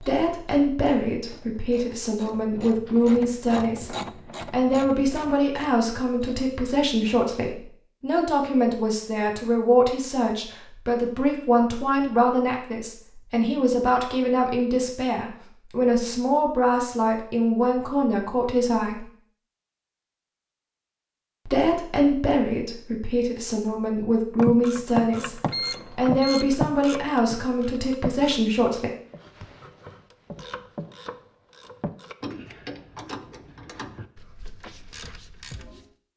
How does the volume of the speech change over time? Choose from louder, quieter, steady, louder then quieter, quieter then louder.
steady.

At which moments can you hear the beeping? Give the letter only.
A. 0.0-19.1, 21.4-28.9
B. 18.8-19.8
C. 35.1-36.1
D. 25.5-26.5
D.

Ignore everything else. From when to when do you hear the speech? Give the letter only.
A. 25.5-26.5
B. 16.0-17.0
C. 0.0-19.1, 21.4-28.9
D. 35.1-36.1
C.